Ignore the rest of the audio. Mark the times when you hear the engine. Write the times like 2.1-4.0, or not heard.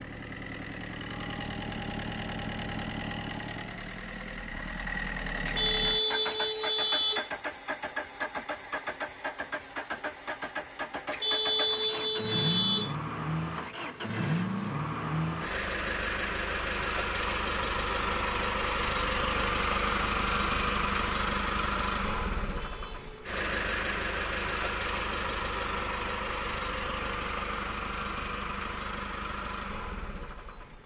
0.0-30.8.